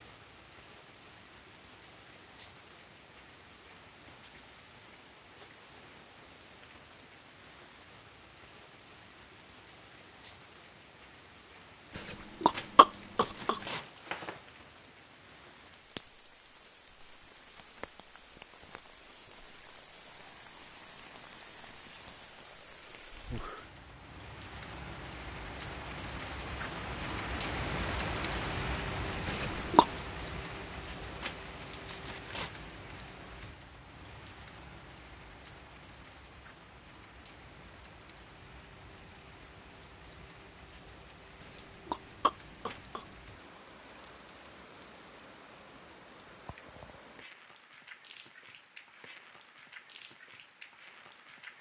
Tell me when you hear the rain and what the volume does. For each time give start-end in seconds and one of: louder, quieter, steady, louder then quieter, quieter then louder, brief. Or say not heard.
0.0-51.5 louder then quieter.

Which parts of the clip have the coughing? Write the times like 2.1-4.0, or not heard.
11.9-13.6, 29.2-29.9, 41.4-43.0.